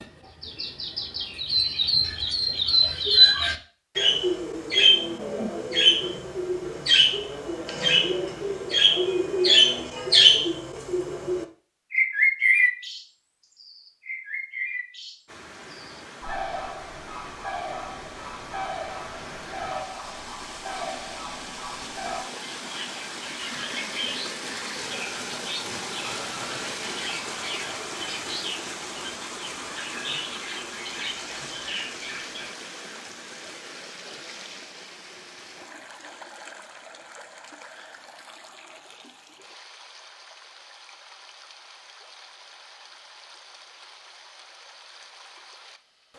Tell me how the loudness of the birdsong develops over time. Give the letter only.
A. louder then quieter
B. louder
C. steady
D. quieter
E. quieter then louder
D.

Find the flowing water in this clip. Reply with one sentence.
You can hear the flowing water from 15.2 to 46.1 s.